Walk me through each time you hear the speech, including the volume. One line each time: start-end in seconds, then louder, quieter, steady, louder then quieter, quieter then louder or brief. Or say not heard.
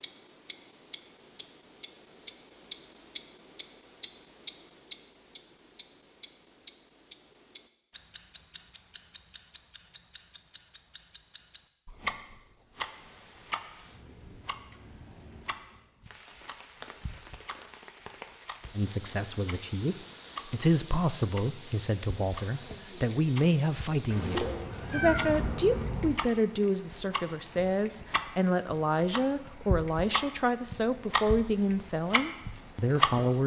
18.7-33.4 steady.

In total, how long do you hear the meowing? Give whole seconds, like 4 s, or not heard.
2 s.